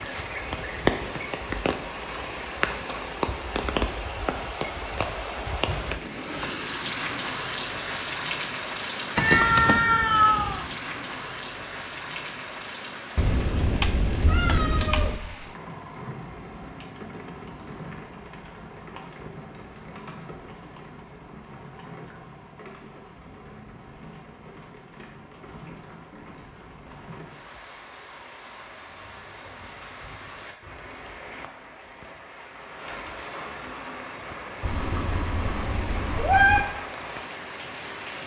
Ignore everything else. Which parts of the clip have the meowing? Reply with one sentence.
You can hear the meowing from 9.2 to 10.7 s, from 13.2 to 15.2 s and from 34.6 to 36.6 s.